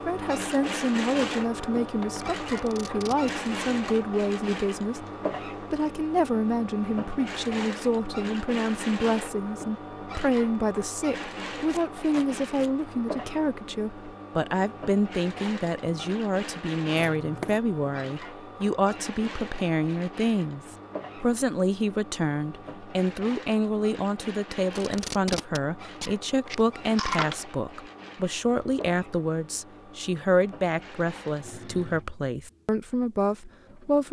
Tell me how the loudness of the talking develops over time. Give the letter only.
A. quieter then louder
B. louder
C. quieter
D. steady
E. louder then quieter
D.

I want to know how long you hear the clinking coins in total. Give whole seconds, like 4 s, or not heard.
2 s.